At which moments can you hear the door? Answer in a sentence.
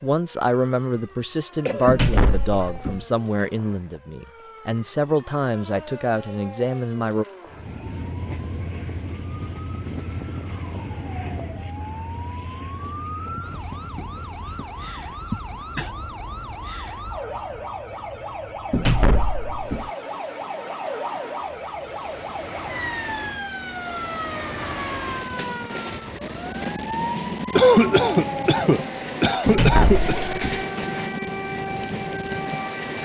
The door can be heard from 1.9 to 3.0 s, from 18.7 to 19.9 s and from 29.4 to 30.6 s.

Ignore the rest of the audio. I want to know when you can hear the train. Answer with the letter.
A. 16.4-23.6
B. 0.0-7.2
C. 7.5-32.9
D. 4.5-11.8
C.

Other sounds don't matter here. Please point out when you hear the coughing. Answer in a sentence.
The coughing can be heard from 1.6 to 2.8 s, from 15.3 to 15.9 s and from 27.6 to 30.2 s.